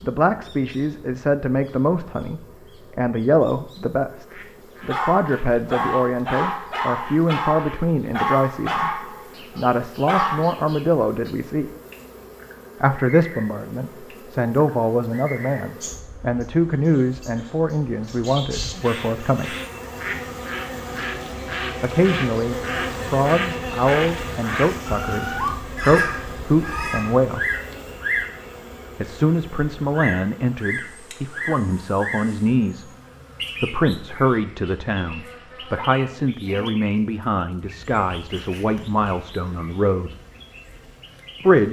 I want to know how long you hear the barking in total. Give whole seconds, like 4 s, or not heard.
6 s.